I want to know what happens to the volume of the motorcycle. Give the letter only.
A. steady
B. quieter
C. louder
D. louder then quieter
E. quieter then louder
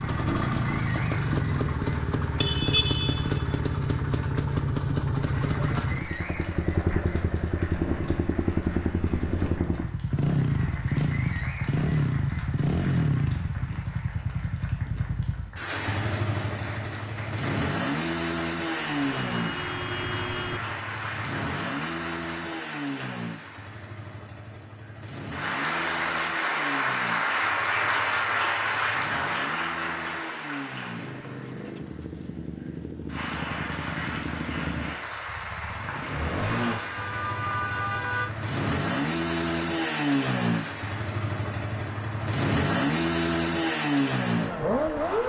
E.